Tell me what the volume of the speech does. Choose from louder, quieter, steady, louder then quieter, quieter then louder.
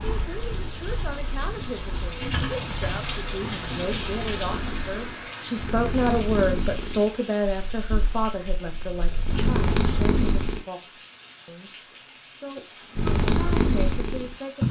louder then quieter.